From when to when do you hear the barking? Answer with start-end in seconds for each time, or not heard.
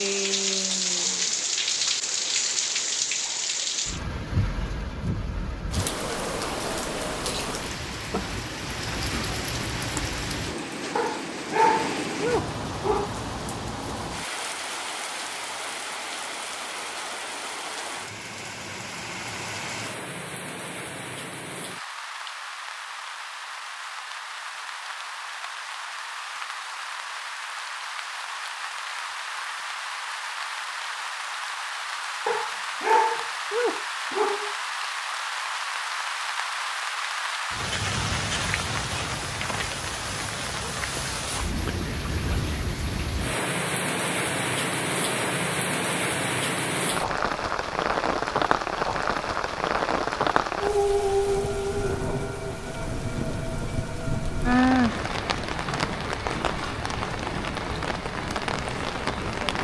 10.9-13.1, 32.2-34.5.